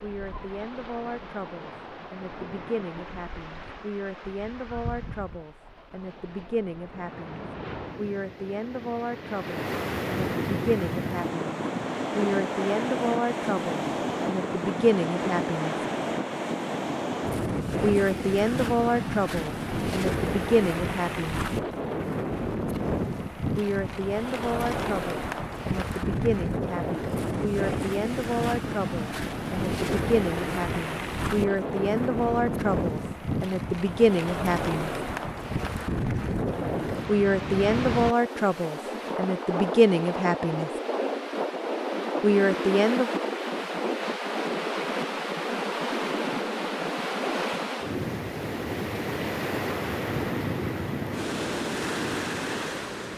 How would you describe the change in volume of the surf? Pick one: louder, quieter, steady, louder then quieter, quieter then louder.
louder.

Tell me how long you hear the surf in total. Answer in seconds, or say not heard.
53 s.